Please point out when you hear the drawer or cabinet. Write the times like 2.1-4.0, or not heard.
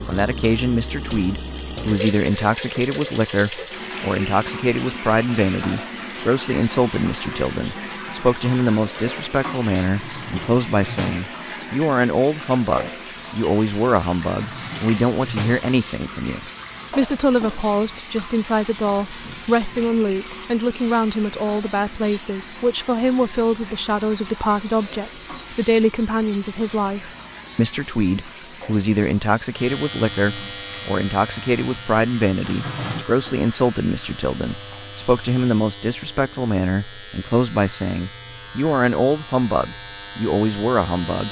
9.8-11.3, 14.3-15.7, 32.4-33.0.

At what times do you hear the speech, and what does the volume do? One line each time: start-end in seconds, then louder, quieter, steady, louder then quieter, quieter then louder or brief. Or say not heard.
0.1-41.2 steady.